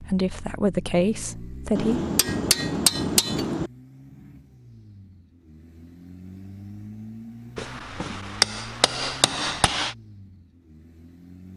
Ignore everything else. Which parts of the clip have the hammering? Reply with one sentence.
You can hear the hammering from 1.8 to 3.7 s and from 7.5 to 9.9 s.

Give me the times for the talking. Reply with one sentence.
The talking can be heard from 0.0 to 2.0 s.